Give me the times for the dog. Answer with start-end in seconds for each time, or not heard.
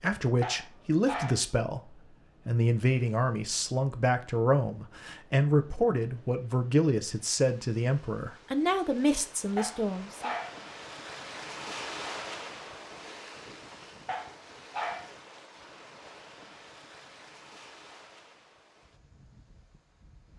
0.4-1.4, 9.6-10.6, 14.1-15.1.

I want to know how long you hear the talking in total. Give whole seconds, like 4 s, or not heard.
10 s.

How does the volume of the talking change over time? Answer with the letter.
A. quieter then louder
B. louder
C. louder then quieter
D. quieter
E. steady
E.